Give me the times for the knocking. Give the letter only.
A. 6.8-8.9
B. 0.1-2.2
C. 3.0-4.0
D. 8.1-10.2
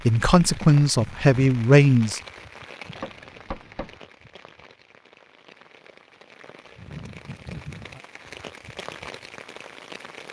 C.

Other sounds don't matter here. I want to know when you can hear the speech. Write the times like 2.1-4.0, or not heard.
0.1-2.2.